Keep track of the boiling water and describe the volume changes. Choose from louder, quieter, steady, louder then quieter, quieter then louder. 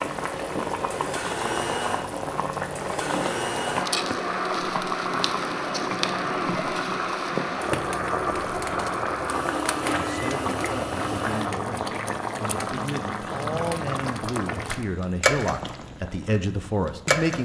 steady.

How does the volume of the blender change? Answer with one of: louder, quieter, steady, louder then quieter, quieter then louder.
steady.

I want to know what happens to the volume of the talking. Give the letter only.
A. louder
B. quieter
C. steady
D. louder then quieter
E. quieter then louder
A.